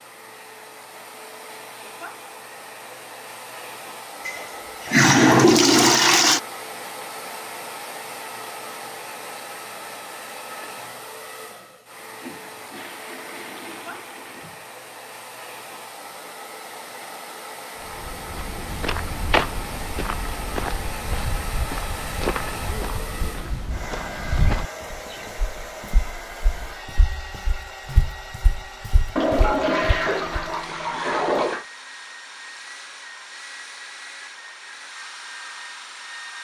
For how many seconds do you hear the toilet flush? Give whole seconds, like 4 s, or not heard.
7 s.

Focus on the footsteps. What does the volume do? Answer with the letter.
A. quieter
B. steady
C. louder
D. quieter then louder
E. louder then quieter
D.